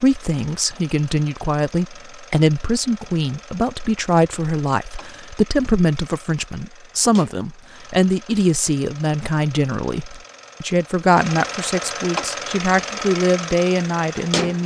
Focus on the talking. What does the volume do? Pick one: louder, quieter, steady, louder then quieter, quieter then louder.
steady.